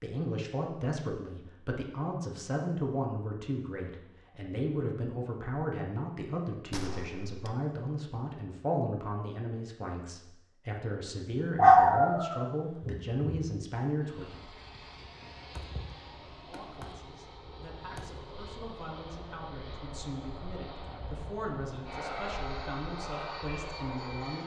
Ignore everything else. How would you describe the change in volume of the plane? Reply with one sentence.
The loudness of the plane goes up.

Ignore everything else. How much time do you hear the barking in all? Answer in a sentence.
You can hear the barking for 2 seconds altogether.